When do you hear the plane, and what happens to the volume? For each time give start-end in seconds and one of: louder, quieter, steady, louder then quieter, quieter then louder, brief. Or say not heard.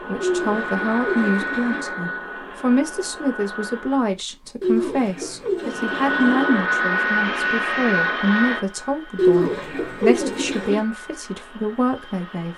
0.0-4.1 quieter
5.5-12.5 quieter.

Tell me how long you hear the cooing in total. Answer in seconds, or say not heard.
5 s.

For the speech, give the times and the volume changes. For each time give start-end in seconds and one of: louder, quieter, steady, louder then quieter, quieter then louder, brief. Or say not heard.
0.1-12.5 steady.